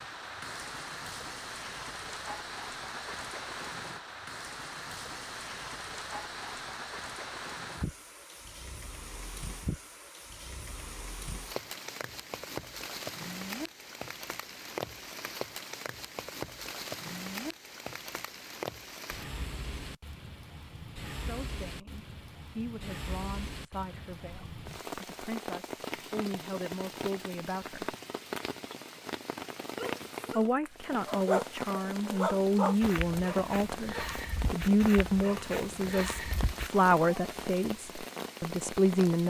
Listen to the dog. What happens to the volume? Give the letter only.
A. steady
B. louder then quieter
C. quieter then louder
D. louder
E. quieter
E.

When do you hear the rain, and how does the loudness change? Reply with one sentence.
The rain can be heard from 0.0 to 39.2 s, at a steady volume.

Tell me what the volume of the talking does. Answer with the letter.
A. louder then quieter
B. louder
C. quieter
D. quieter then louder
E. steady
B.